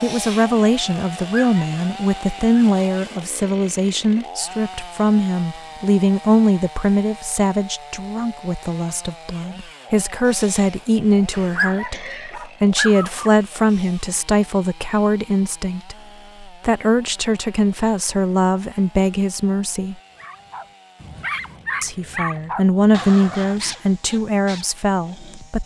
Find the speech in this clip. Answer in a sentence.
The speech can be heard from 0.0 to 19.9 s and from 21.8 to 25.6 s.